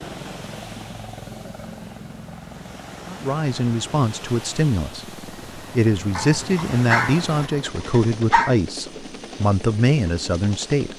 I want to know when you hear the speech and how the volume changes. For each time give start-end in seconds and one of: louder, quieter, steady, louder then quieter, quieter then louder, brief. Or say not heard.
3.0-10.9 steady.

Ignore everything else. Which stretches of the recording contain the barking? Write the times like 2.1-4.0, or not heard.
6.2-8.6.